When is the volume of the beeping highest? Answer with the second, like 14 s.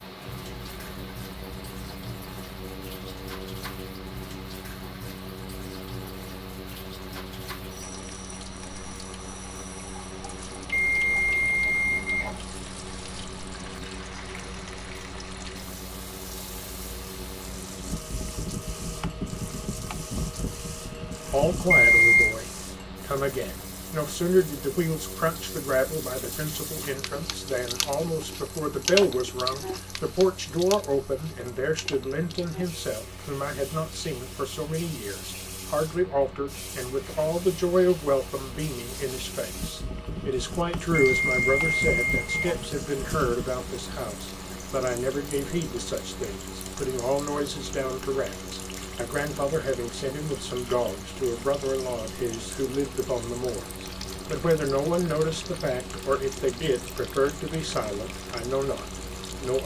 22 s.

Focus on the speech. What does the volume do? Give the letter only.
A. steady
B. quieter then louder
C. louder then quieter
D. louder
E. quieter
A.